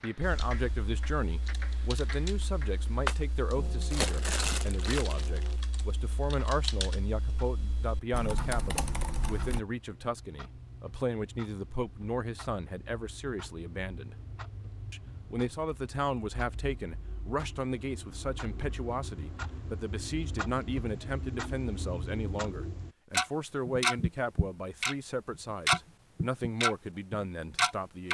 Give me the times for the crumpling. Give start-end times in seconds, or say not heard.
3.0-5.5.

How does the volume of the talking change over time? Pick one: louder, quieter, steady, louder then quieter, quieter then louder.
steady.